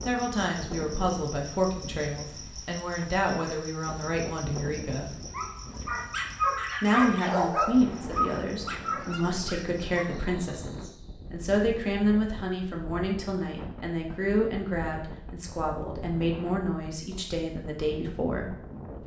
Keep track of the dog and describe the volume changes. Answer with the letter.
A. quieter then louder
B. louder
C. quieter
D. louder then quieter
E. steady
C.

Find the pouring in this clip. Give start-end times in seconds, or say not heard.
not heard.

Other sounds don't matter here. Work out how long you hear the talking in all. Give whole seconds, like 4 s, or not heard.
17 s.